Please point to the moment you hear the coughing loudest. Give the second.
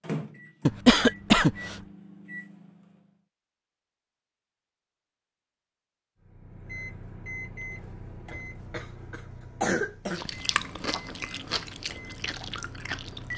1 s.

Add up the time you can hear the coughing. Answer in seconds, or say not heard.
3 s.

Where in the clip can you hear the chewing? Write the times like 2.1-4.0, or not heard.
10.1-13.3.